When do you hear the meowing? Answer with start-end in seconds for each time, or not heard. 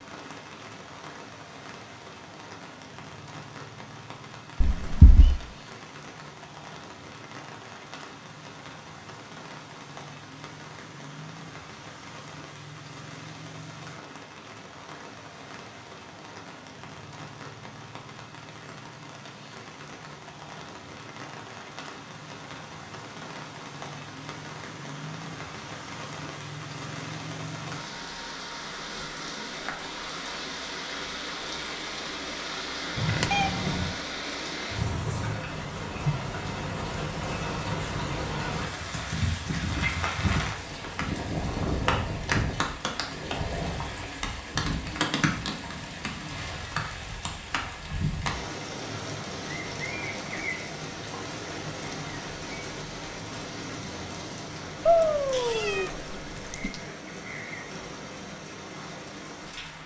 4.6-5.3, 33.0-34.0, 54.9-56.8.